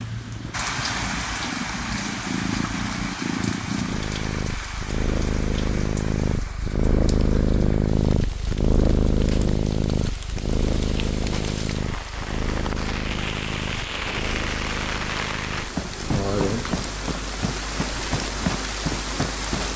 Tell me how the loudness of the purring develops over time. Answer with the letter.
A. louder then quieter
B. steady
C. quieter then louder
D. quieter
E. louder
A.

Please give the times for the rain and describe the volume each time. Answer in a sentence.
You can hear the rain from 0.0 to 19.7 s, getting quieter then louder.